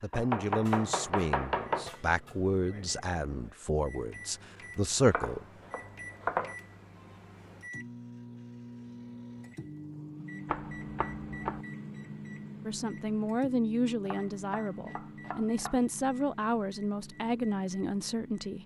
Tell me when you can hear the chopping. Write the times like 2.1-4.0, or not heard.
0.1-1.9, 5.0-6.5, 10.4-11.7, 14.1-15.8.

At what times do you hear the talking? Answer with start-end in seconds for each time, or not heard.
0.0-5.5, 12.7-18.6.